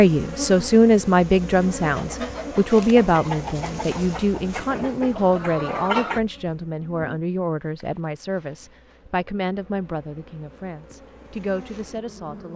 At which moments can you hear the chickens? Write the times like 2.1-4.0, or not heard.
1.8-6.2.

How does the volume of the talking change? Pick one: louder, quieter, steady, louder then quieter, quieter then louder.
quieter.